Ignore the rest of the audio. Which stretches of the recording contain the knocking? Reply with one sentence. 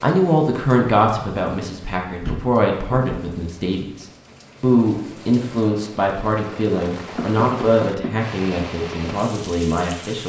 You can hear the knocking from 2.0 to 3.4 s and from 7.2 to 8.2 s.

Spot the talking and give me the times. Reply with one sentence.
You can hear the talking from 0.0 to 10.2 s.